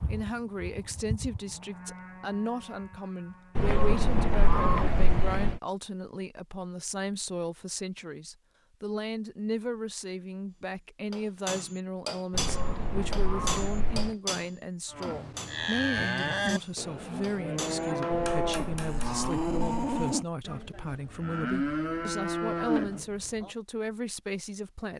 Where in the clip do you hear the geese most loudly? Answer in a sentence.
The loudest moment of the geese is at 5 seconds.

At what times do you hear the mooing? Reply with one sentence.
The mooing can be heard from 0.0 to 3.8 s and from 14.9 to 23.5 s.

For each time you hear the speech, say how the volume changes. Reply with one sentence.
The speech can be heard from 0.0 to 24.9 s, at a steady volume.